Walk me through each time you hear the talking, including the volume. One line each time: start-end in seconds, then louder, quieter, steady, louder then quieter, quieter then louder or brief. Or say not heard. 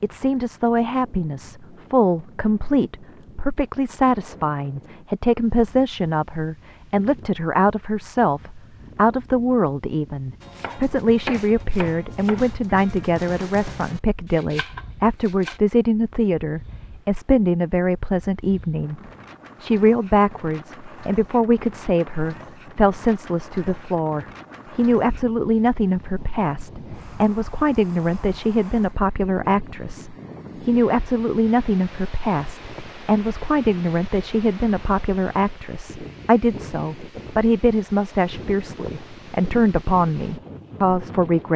0.0-19.0 steady
19.6-41.5 steady.